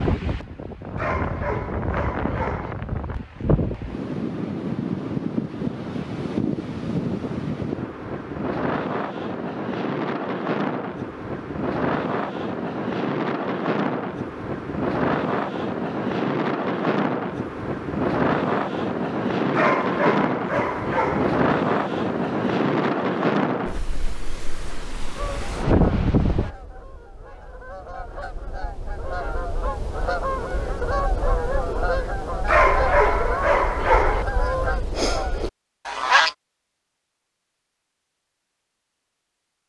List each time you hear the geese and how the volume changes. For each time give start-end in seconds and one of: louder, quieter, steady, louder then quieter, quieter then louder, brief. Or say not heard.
25.1-36.4 louder.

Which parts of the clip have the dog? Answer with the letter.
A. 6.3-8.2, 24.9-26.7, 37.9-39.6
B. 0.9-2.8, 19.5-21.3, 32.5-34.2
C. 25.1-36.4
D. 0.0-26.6
B.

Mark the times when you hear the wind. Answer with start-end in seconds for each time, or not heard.
0.0-26.6.